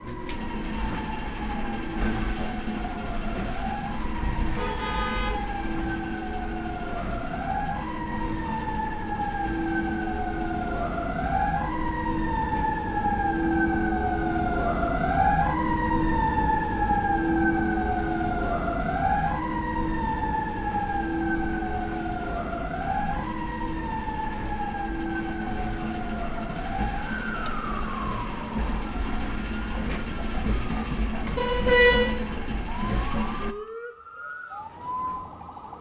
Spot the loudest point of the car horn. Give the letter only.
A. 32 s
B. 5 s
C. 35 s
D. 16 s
A.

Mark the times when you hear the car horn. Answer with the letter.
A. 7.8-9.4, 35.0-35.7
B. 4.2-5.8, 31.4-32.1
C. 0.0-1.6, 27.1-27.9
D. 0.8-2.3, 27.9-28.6
B.